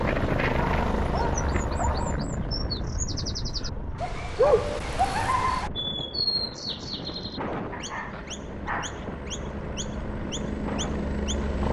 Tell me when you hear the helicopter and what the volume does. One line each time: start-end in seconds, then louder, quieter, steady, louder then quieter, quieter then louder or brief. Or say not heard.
0.0-11.6 quieter then louder.